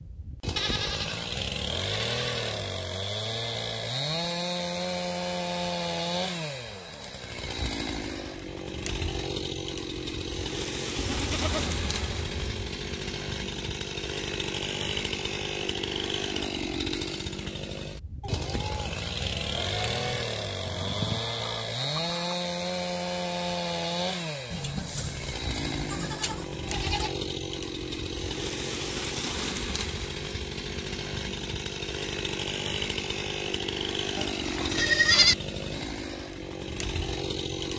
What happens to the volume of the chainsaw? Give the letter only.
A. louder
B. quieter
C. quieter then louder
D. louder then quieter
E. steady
E.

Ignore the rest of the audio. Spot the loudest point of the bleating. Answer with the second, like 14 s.
35 s.